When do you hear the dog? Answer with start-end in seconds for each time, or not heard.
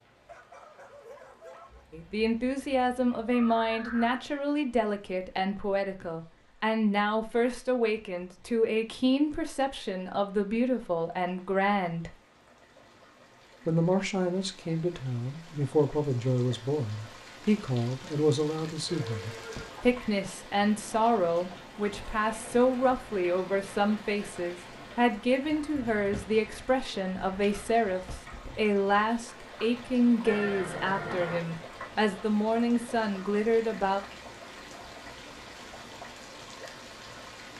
0.2-1.9.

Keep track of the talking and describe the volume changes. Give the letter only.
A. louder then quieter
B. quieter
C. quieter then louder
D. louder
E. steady
E.